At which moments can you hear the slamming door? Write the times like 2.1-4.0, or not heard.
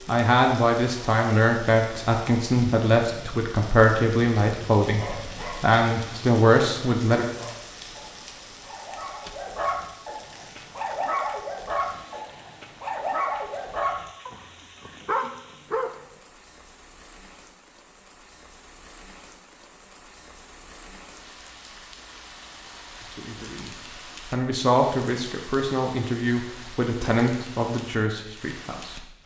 9.1-9.6.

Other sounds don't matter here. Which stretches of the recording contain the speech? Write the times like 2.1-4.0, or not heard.
0.1-7.2, 23.0-29.1.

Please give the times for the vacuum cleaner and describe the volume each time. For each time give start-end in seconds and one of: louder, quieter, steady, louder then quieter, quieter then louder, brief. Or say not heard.
not heard.